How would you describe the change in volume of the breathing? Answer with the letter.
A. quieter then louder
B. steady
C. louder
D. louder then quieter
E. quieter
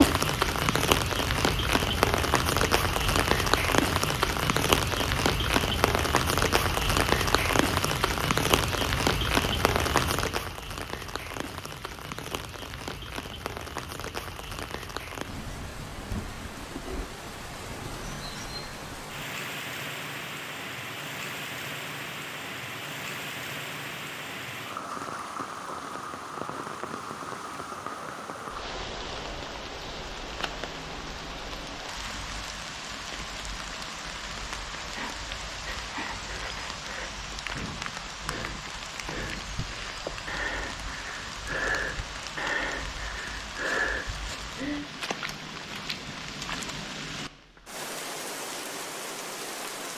C.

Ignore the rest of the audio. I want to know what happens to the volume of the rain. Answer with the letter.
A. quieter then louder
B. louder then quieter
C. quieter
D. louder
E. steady
C.